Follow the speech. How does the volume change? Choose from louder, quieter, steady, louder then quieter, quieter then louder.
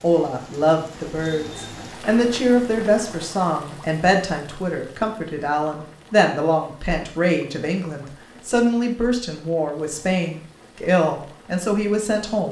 steady.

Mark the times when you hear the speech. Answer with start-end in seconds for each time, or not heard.
0.0-12.4.